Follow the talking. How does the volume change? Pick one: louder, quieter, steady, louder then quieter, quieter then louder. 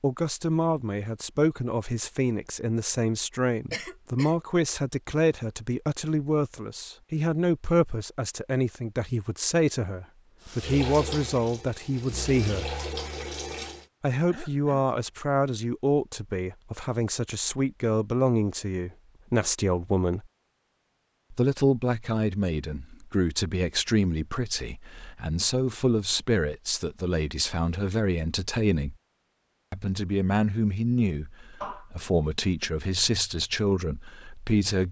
steady.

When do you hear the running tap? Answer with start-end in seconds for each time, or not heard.
10.4-13.8.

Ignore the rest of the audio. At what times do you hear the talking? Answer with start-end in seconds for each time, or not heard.
0.0-12.7, 14.0-20.2, 21.3-28.9, 29.7-34.8.